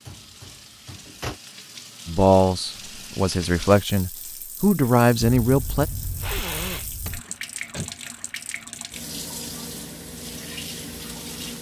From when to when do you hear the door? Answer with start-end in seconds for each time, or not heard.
0.1-1.4, 7.0-8.0.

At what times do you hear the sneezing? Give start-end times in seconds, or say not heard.
5.4-7.2.